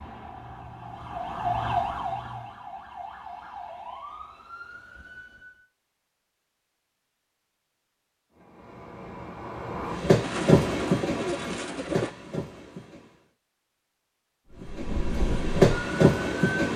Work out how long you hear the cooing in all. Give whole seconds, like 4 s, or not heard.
2 s.